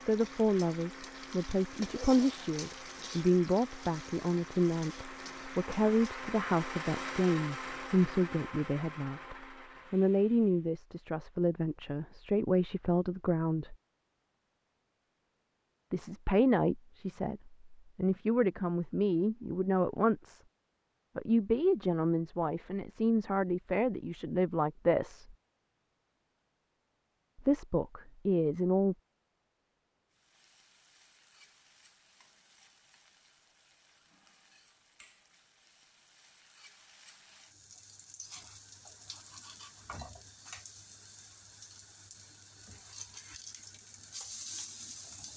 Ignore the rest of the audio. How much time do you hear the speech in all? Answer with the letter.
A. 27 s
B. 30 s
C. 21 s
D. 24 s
D.